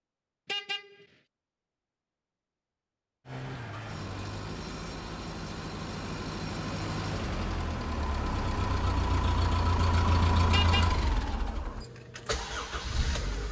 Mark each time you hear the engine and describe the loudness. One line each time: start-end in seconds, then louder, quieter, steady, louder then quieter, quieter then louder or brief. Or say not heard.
3.2-13.4 louder then quieter.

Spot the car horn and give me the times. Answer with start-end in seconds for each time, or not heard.
0.5-1.1, 10.5-11.3.